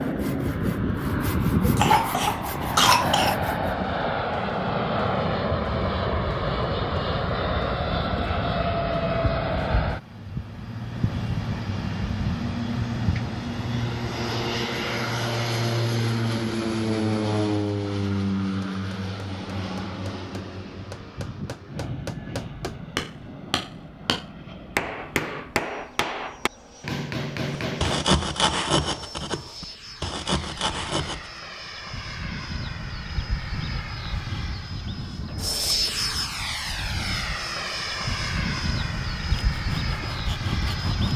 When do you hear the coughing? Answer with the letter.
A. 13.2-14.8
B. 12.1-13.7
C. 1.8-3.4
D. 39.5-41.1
C.